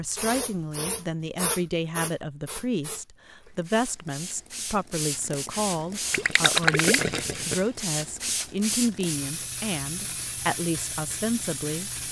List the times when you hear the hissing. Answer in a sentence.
You can hear the hissing from 0.0 to 12.0 s.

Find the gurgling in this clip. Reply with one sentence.
The gurgling can be heard from 6.1 to 7.5 s.